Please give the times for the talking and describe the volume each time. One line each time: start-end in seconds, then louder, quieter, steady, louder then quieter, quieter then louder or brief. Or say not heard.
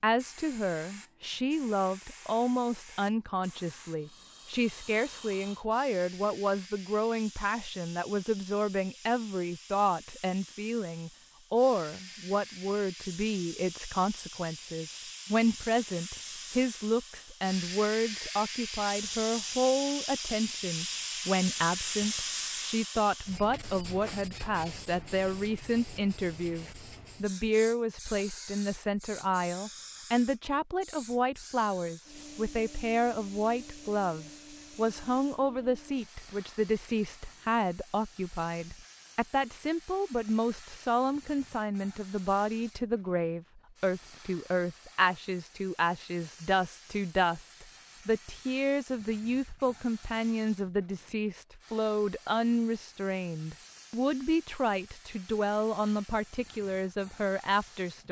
0.0-58.0 steady.